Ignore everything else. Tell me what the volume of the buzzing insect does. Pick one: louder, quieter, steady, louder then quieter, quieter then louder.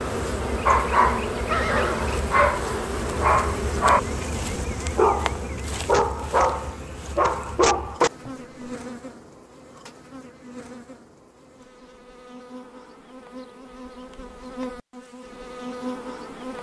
quieter then louder.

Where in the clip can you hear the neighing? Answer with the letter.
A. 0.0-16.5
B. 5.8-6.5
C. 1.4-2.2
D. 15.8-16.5
C.